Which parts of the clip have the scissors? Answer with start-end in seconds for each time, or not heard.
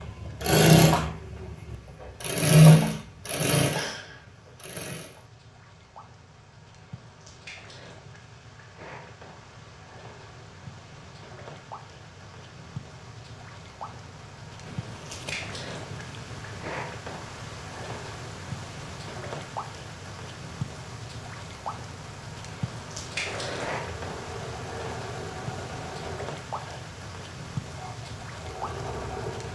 14.7-16.6.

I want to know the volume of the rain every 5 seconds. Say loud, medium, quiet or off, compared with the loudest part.
quiet, medium, medium, loud, loud, loud.